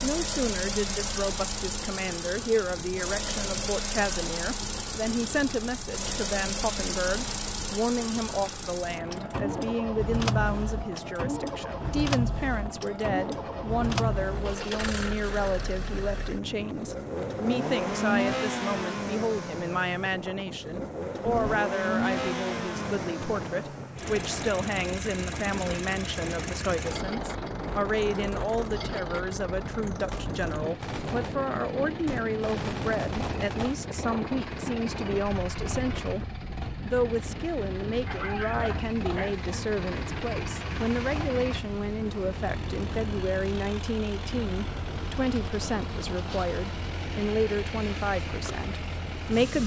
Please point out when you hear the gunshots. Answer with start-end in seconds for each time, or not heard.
30.1-33.8.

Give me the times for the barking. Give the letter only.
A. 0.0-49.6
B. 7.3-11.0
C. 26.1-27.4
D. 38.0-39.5
D.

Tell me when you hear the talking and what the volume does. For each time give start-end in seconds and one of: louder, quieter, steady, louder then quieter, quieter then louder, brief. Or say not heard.
0.0-49.6 steady.